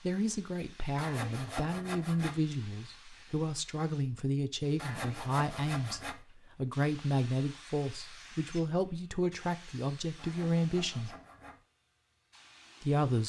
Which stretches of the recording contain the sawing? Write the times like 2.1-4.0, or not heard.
0.9-2.4, 4.8-6.2, 10.2-11.6.